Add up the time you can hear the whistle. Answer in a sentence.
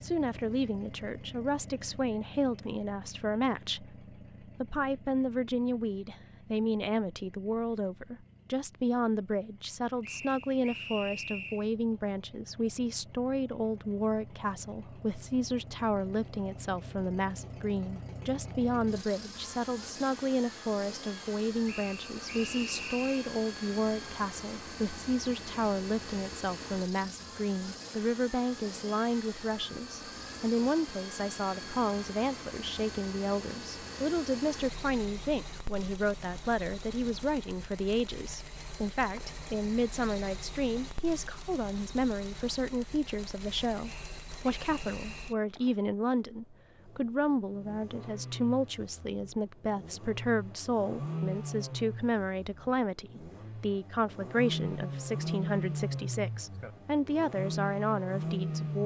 You can hear the whistle for 5 seconds altogether.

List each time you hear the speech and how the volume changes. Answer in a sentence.
The speech can be heard from 0.0 to 58.8 s, at a steady volume.